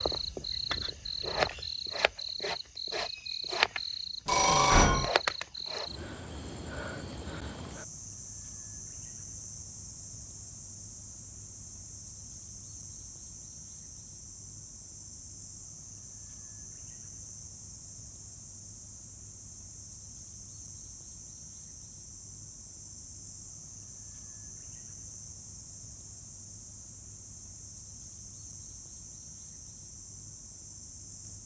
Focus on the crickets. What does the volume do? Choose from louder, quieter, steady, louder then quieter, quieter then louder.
quieter.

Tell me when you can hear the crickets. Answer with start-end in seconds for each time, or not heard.
0.0-31.4.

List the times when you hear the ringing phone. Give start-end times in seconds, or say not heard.
4.2-5.1.